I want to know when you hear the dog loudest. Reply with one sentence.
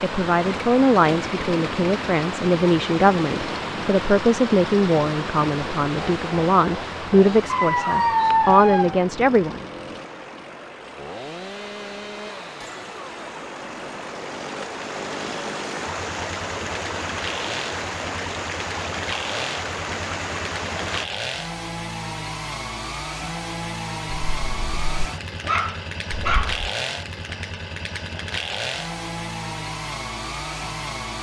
The volume of the dog peaks at 8 seconds.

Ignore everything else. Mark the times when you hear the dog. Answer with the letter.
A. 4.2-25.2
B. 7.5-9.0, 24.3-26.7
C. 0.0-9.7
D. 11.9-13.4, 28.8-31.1
B.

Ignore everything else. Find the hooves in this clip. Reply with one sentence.
You can't hear the hooves here.